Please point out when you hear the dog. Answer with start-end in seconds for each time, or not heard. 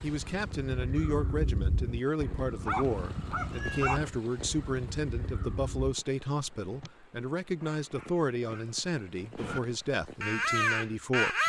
2.6-4.1, 7.5-8.8.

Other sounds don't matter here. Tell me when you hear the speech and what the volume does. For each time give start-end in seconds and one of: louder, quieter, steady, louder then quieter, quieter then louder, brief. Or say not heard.
0.0-11.4 steady.